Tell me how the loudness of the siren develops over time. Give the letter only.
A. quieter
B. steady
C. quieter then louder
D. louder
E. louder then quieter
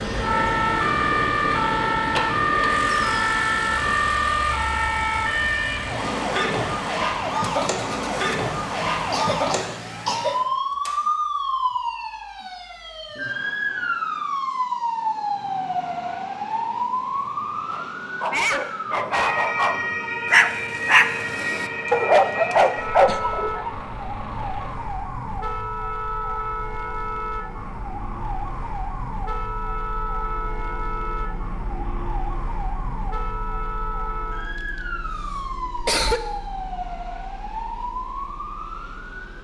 A.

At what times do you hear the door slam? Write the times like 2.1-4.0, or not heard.
not heard.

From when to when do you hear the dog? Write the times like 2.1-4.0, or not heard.
17.7-23.7.